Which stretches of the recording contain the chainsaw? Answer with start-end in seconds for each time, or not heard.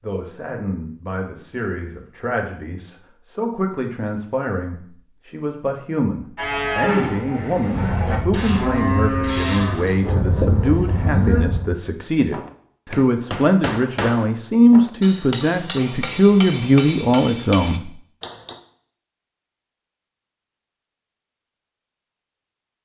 not heard.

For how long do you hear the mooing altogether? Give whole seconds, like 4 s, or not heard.
5 s.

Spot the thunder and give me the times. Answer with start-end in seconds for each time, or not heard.
7.7-11.7.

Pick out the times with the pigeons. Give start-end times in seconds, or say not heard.
not heard.